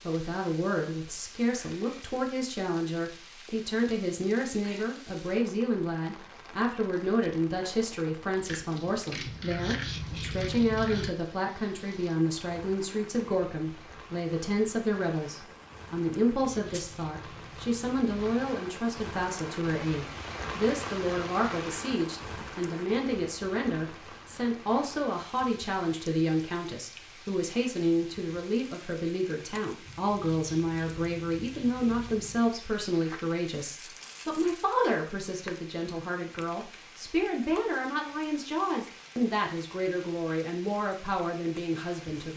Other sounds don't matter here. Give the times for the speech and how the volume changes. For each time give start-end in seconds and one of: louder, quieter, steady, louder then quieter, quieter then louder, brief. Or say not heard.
0.1-42.3 steady.